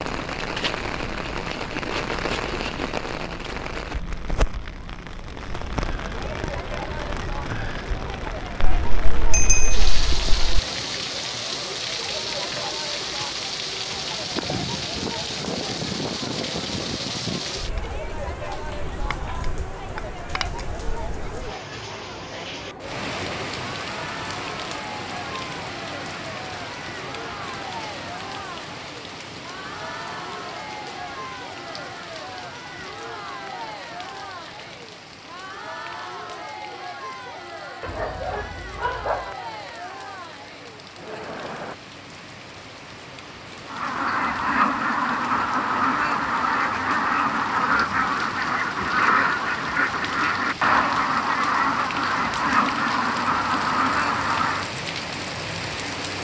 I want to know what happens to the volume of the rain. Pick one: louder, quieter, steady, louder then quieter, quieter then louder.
quieter then louder.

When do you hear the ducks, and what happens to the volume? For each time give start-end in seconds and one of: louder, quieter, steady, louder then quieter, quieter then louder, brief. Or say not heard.
43.6-54.7 steady.